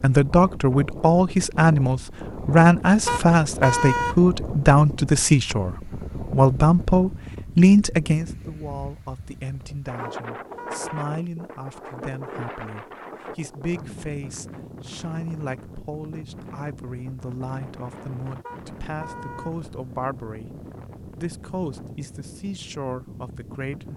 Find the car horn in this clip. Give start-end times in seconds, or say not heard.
3.0-4.2, 10.0-10.8, 18.4-19.6.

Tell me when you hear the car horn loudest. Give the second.
4 s.